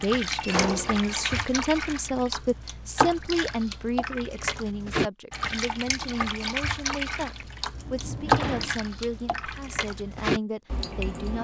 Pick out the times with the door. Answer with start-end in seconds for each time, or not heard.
0.3-1.4, 7.7-8.8.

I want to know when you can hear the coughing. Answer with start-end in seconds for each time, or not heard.
not heard.